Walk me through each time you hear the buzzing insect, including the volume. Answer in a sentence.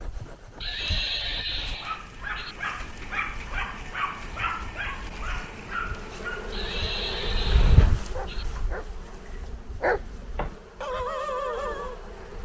You can hear the buzzing insect from 0.0 to 12.4 s, getting louder then quieter.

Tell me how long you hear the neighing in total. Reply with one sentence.
The neighing can be heard for 4 seconds in total.